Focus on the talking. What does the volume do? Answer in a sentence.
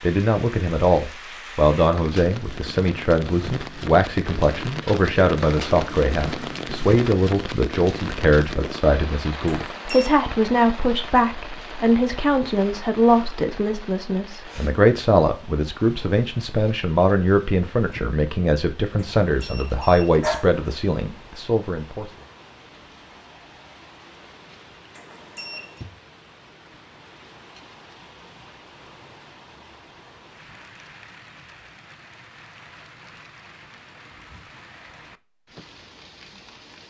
The loudness of the talking stays about the same.